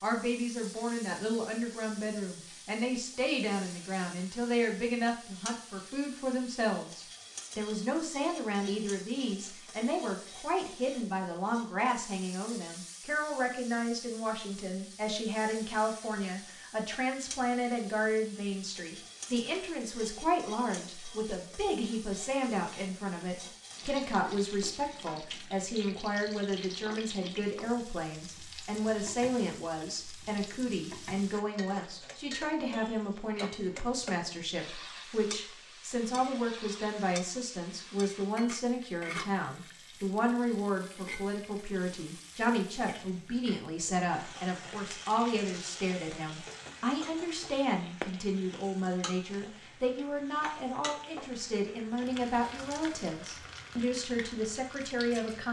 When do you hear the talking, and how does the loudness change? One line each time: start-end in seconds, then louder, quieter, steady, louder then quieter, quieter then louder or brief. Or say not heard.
0.0-55.4 steady.